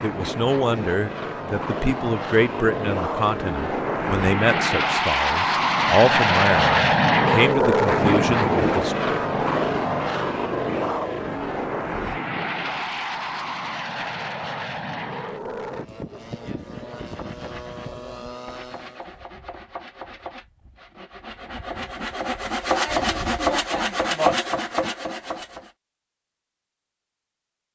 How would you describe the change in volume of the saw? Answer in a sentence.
The loudness of the saw goes up.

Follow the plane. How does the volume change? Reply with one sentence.
The volume of the plane goes up, then down.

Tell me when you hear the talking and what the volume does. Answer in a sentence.
The talking can be heard from 0.0 to 8.9 s, at a steady volume.